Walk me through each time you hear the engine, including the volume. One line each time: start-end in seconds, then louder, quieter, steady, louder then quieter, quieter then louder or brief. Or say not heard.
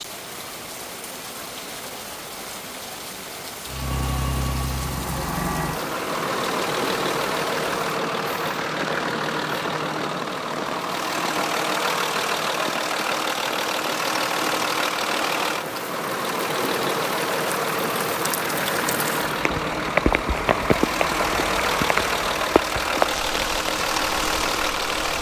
3.6-25.1 steady.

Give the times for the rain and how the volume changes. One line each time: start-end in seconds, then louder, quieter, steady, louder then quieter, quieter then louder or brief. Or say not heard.
0.0-25.1 louder.